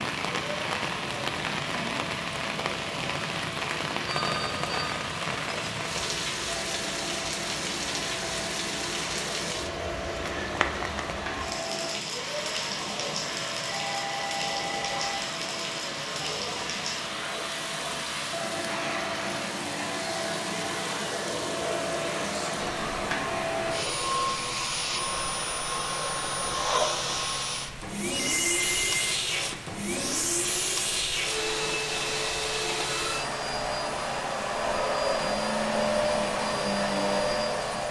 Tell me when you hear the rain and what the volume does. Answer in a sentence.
The rain can be heard from 0.0 to 37.8 s, getting quieter.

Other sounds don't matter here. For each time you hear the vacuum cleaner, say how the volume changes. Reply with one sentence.
The vacuum cleaner can be heard from 0.2 to 37.8 s, getting louder.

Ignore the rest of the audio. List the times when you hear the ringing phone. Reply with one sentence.
You can hear the ringing phone from 4.0 to 5.0 s, from 13.7 to 15.2 s and from 28.1 to 29.1 s.